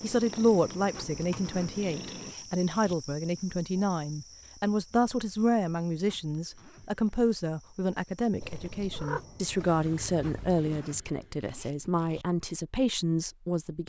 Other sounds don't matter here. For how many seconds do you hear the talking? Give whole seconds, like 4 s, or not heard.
14 s.